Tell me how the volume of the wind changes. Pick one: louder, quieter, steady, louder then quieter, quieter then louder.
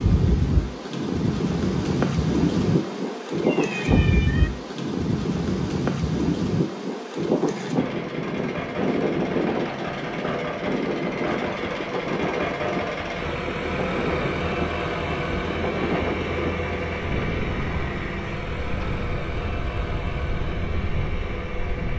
quieter.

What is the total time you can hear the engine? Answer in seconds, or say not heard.
14 s.